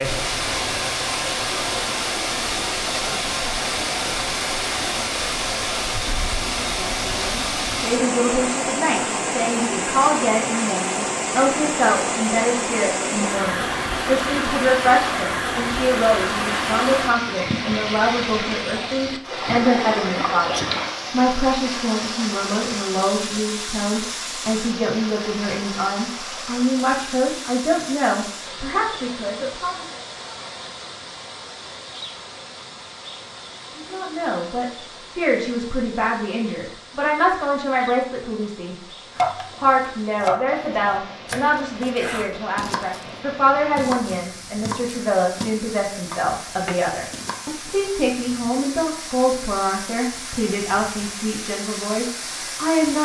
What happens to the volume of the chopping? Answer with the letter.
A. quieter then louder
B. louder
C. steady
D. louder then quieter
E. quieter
E.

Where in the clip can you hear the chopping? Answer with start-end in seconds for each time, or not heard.
39.1-47.8.